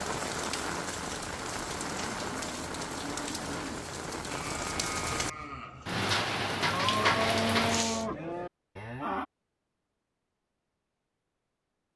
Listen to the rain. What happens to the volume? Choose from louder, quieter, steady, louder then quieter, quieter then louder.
louder.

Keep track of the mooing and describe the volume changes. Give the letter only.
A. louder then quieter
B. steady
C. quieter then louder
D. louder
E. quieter
D.